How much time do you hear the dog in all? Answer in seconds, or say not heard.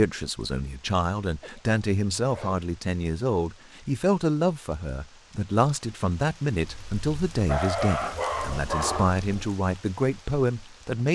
4 s.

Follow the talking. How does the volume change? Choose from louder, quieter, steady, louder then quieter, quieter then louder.
steady.